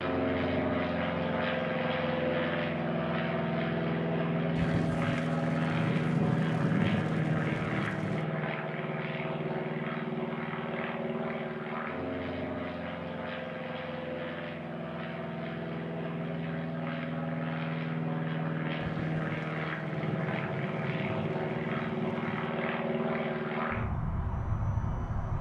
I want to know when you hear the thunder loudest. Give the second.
7 s.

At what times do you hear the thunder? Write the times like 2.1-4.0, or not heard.
4.5-8.2, 18.8-22.5.